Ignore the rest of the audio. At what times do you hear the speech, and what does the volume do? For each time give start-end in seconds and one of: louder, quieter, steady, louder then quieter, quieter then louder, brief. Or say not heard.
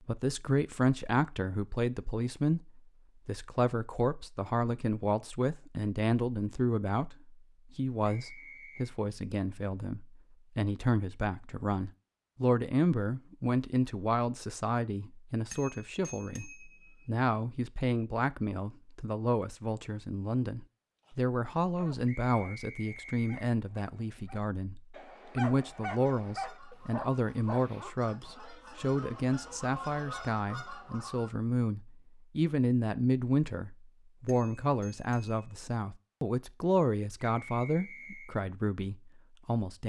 0.1-39.8 steady.